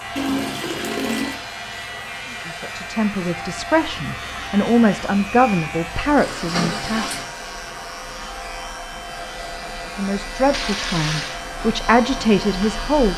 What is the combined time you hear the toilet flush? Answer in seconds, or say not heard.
3 s.